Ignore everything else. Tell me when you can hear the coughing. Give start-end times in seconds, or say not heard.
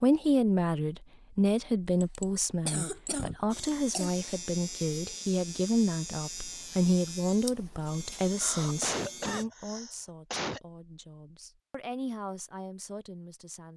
2.0-4.1, 8.2-10.6.